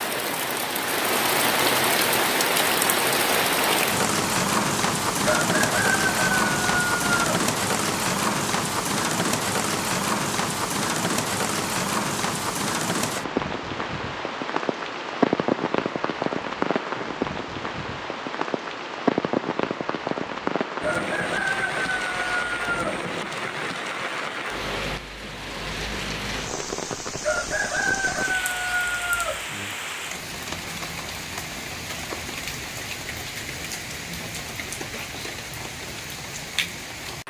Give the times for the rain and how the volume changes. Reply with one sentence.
The rain can be heard from 0.0 to 37.2 s, getting quieter.